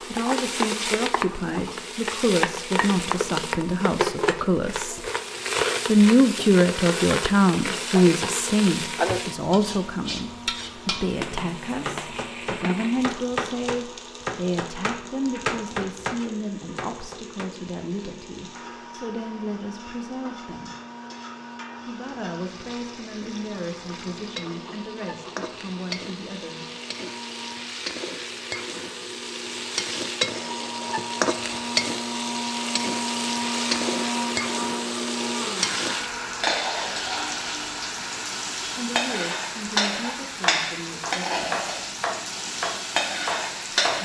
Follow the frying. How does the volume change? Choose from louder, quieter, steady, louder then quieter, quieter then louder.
quieter then louder.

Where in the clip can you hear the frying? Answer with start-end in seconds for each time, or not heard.
0.0-44.0.